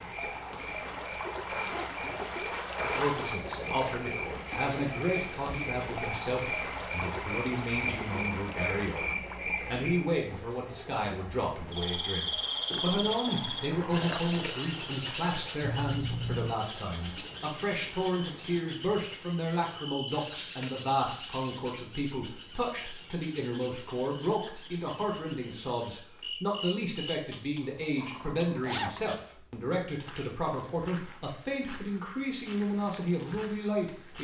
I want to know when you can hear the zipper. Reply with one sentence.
You can hear the zipper from 1.4 to 3.2 s, from 15.6 to 16.6 s and from 28.6 to 29.1 s.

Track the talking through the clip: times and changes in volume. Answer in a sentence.
The talking can be heard from 3.0 to 34.1 s, at a steady volume.